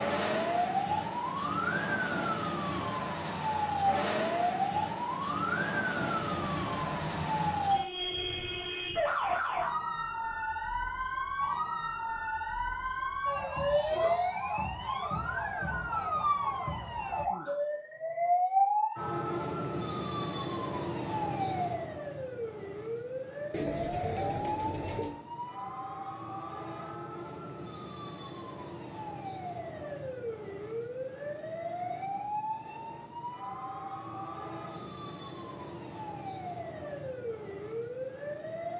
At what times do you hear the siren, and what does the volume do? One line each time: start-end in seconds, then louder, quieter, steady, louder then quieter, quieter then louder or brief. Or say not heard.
0.0-38.7 quieter.